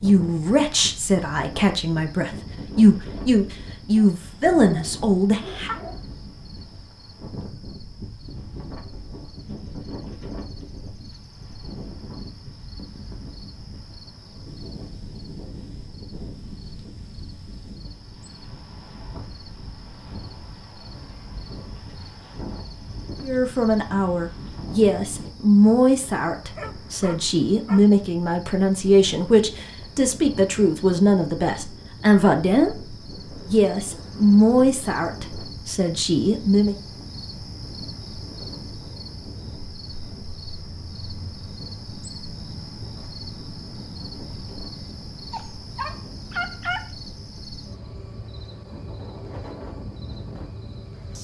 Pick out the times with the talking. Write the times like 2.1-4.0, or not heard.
0.0-5.8, 23.2-32.8, 33.5-36.8.